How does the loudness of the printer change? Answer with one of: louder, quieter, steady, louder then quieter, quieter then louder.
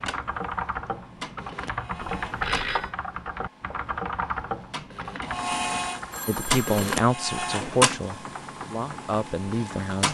louder.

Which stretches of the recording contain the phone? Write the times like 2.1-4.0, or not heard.
2.2-3.0, 6.1-7.0.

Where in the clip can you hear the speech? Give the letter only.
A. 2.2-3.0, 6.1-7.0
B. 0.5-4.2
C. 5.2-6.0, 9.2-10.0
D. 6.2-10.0
D.